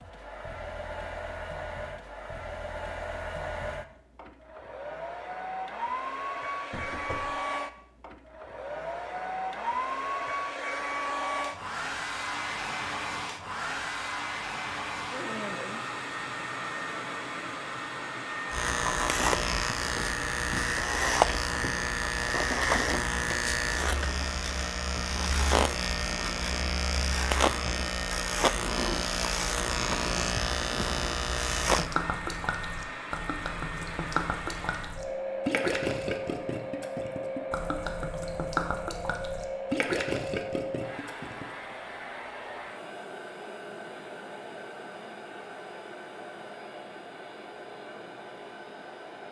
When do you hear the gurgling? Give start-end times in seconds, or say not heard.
31.6-41.5.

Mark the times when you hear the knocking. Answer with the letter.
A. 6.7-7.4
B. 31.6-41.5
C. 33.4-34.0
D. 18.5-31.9
A.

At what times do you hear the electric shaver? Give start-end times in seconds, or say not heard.
18.5-31.9.